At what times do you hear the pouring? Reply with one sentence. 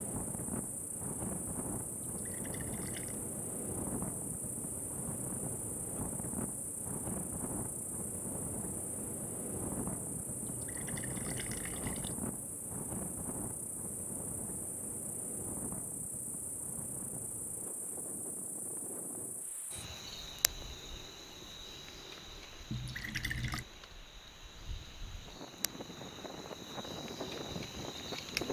The pouring can be heard from 2.0 to 3.2 s, from 10.4 to 12.2 s and from 22.7 to 23.6 s.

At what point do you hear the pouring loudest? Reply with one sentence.
The volume of the pouring peaks at 23 seconds.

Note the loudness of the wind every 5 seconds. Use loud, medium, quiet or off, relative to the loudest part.
loud, loud, loud, medium, quiet, loud.